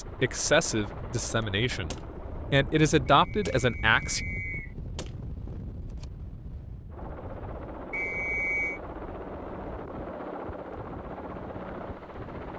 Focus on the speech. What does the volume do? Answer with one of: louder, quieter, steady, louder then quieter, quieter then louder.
quieter then louder.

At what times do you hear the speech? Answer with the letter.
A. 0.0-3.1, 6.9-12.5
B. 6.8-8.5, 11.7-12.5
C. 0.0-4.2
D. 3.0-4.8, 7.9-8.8
C.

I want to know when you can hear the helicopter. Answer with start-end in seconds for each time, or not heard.
0.0-3.1, 6.9-12.5.